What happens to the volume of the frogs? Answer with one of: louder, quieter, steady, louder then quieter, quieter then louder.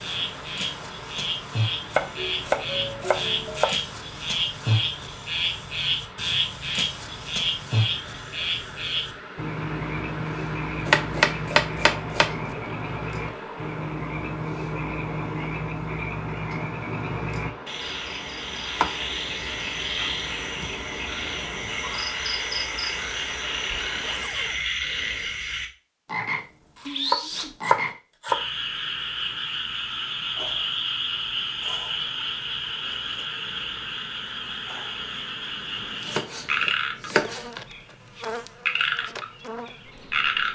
steady.